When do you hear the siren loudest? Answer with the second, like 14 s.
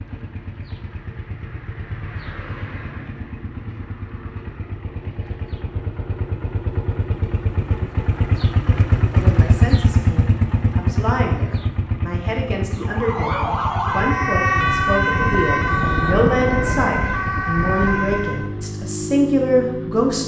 15 s.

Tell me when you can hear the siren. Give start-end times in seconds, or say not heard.
12.8-18.5.